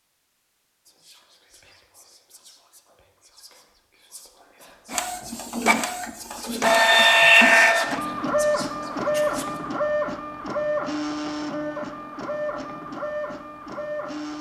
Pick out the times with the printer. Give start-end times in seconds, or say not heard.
4.9-14.3.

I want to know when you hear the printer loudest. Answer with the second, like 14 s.
7 s.